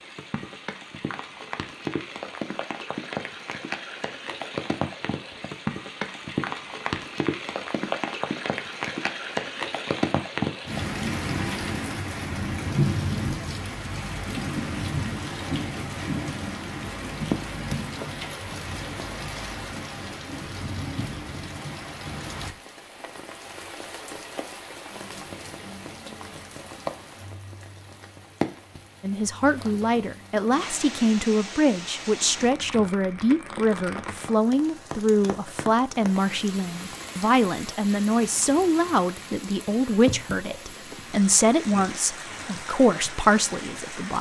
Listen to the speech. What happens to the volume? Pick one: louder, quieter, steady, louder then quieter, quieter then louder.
steady.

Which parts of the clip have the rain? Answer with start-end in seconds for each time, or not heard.
0.0-44.1.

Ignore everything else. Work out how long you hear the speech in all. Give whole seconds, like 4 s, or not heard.
15 s.